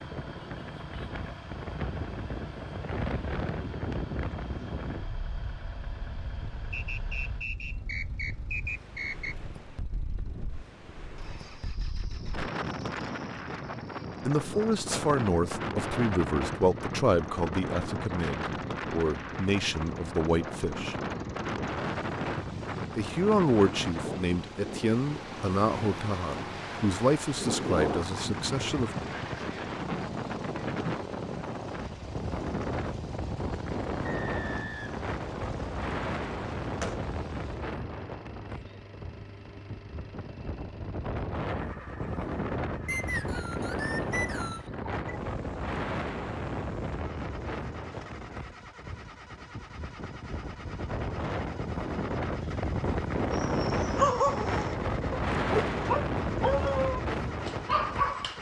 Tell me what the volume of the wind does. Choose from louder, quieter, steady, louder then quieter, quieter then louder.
louder.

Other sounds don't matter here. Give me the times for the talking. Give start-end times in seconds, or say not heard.
14.2-20.9, 22.9-28.9.